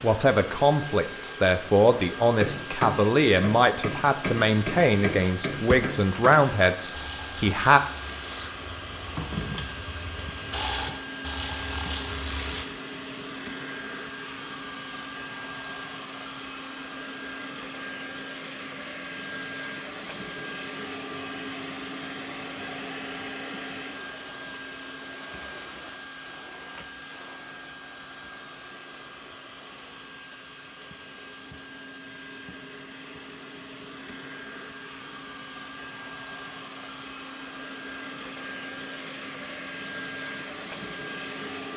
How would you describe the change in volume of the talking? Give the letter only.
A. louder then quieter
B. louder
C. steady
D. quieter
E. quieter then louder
C.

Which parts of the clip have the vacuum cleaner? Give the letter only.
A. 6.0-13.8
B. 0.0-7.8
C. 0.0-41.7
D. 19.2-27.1
C.